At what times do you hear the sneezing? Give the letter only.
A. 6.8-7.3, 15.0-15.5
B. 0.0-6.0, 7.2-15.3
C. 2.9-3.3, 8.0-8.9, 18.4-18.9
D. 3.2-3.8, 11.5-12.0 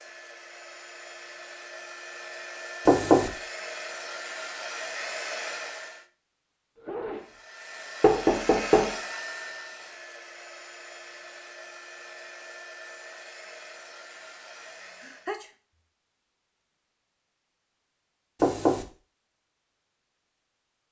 A.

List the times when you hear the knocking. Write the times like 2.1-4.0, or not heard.
2.9-3.3, 8.0-8.9, 18.4-18.9.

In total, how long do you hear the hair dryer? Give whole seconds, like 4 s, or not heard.
14 s.